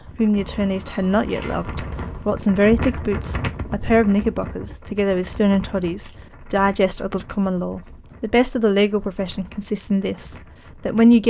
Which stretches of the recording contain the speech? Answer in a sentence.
You can hear the speech from 0.1 to 11.2 s.